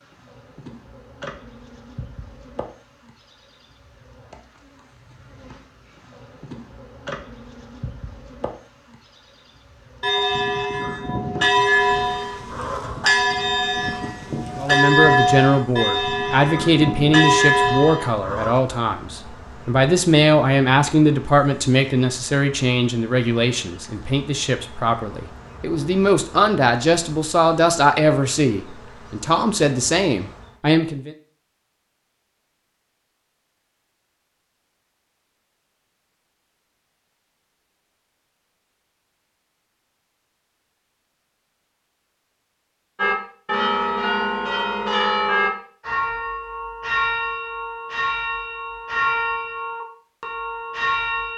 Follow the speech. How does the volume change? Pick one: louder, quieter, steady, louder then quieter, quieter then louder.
steady.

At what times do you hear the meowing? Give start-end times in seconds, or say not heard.
not heard.